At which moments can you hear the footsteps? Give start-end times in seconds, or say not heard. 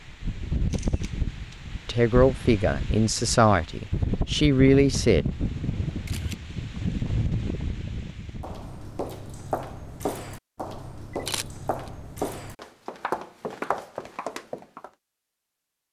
8.4-14.9.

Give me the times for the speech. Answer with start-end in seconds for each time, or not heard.
1.9-5.2.